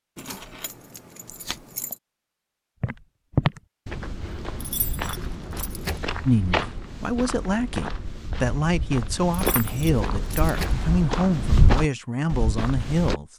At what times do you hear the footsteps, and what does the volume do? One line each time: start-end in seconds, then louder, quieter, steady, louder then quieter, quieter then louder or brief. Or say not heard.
2.8-13.2 quieter then louder.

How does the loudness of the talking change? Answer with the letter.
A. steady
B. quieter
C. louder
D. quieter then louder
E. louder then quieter
A.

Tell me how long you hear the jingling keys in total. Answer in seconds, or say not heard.
5 s.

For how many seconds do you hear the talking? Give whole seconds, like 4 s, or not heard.
7 s.